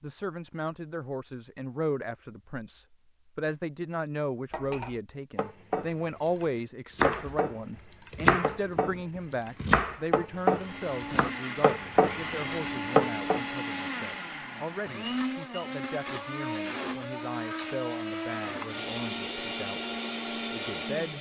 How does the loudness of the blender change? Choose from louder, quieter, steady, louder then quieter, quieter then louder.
steady.